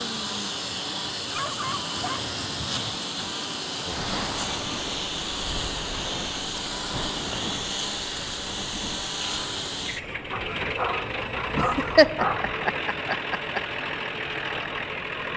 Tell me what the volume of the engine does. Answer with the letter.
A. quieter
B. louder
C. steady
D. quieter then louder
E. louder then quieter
C.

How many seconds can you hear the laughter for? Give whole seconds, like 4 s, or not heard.
2 s.